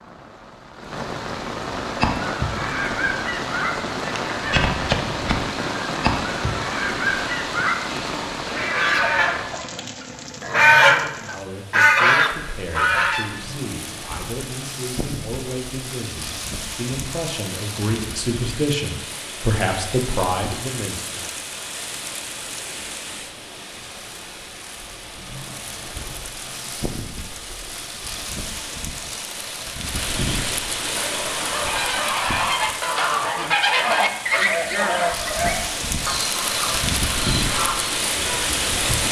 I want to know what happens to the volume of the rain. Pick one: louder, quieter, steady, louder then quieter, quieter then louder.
quieter then louder.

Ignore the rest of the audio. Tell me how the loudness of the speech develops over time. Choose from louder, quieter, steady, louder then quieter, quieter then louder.
louder.